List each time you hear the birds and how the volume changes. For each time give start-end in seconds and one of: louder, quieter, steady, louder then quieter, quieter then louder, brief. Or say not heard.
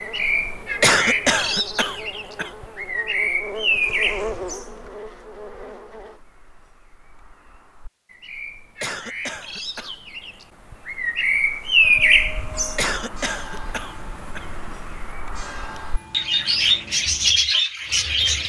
0.0-18.4 quieter then louder.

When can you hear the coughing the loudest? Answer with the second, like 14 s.
1 s.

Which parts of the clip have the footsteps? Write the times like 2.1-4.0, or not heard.
not heard.